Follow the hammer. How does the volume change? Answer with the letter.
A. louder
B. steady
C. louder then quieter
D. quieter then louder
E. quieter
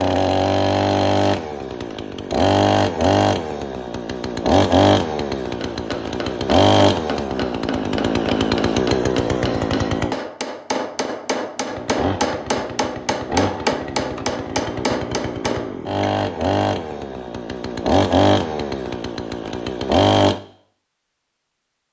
A.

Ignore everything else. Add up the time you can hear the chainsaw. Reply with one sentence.
The chainsaw can be heard for 19 seconds in total.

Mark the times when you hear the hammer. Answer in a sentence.
You can hear the hammer from 5.5 to 16.1 s.